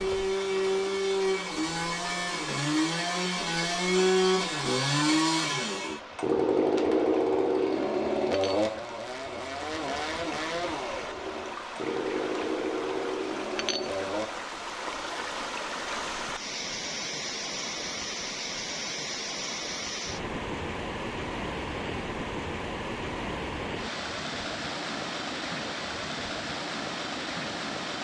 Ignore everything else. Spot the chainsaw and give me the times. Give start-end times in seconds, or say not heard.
0.0-14.3.